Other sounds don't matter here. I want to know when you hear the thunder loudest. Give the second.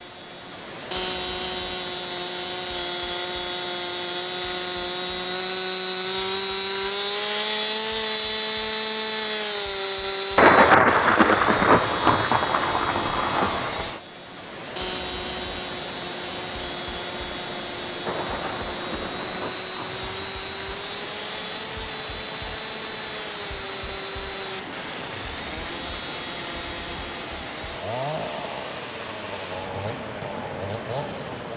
11 s.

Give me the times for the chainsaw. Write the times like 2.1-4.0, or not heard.
0.0-31.5.